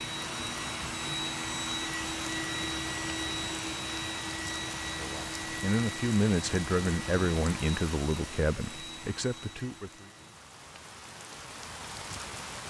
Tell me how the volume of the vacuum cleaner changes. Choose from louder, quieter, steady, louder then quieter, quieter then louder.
quieter.